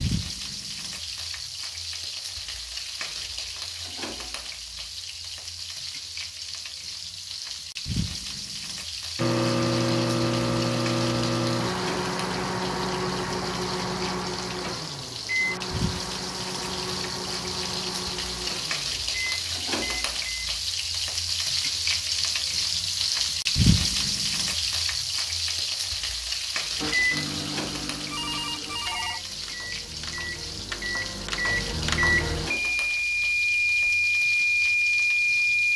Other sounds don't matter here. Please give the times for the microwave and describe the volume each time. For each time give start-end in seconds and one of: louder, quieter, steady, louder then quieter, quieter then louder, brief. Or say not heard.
9.2-20.6 quieter
26.8-35.7 louder.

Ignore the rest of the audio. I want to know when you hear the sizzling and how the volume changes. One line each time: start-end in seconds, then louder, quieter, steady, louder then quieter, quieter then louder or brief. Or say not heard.
0.0-35.7 louder then quieter.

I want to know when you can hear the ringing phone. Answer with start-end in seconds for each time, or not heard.
28.1-29.2.